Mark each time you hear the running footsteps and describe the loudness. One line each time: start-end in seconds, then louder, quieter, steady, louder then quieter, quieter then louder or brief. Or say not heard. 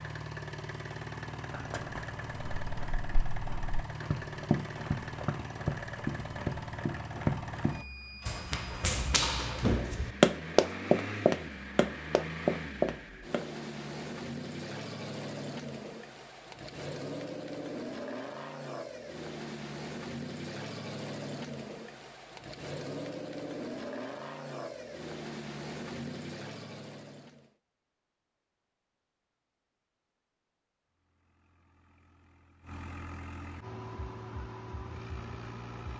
1.4-13.4 louder.